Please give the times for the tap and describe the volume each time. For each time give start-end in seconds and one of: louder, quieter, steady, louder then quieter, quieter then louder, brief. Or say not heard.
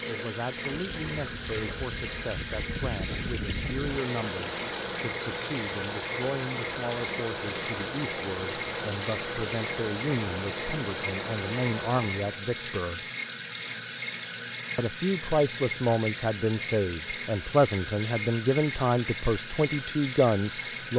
0.0-20.9 steady.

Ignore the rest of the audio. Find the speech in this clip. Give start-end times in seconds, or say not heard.
0.1-13.0, 14.8-20.9.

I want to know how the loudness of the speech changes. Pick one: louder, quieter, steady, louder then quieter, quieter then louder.
louder.